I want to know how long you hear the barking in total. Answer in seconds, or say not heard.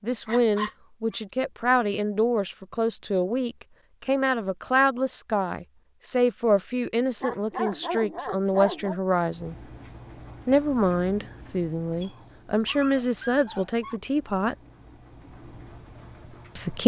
4 s.